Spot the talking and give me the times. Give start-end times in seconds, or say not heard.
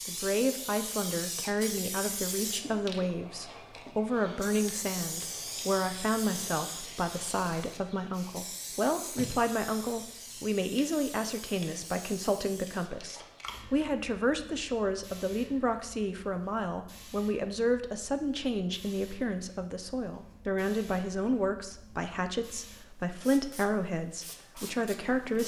0.1-25.4.